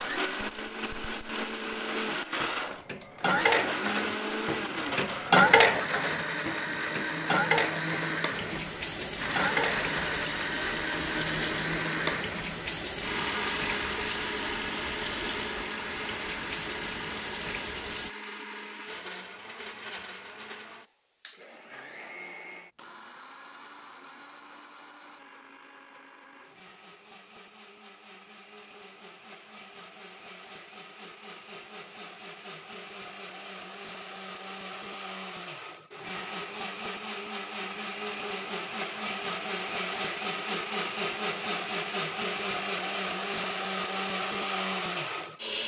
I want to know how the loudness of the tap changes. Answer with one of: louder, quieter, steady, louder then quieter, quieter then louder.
steady.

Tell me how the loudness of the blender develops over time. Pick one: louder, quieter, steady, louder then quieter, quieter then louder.
quieter then louder.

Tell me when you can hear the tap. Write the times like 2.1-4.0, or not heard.
8.3-18.1.